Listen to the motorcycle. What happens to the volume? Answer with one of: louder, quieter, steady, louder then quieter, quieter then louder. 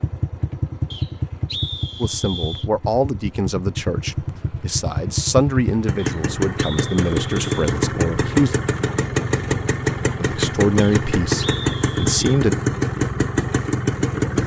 louder.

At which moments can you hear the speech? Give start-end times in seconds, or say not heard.
2.0-8.6, 10.2-12.6.